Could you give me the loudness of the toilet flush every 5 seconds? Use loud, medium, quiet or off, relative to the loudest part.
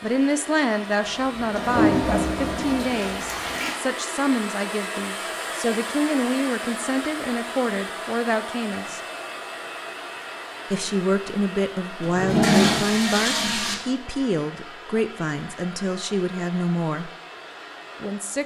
medium, off, loud, off.